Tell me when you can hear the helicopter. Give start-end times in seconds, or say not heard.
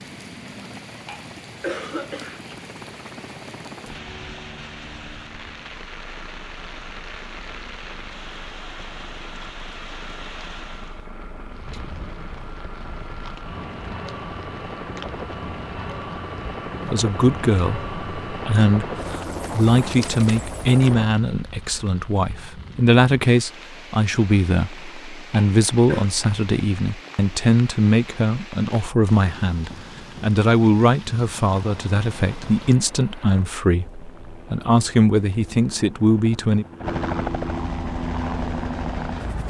0.0-21.1, 31.6-39.4.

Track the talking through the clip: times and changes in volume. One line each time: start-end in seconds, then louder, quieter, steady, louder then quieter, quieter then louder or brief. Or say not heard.
16.8-36.6 steady.